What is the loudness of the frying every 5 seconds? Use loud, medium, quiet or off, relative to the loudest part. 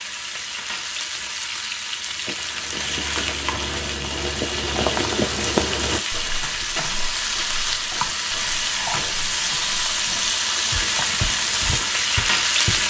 medium, loud, loud.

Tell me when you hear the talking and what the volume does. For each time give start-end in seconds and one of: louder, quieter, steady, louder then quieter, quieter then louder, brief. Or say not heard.
not heard.